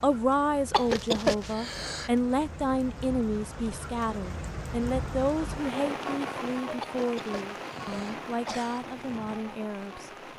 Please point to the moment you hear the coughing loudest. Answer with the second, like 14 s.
1 s.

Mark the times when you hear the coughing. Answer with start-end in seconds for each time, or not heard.
0.7-2.1, 6.8-8.8.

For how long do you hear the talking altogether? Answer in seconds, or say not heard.
10 s.